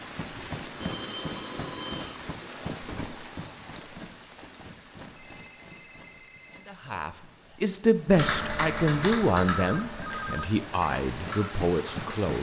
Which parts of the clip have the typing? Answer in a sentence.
You can hear the typing from 8.1 to 12.1 s.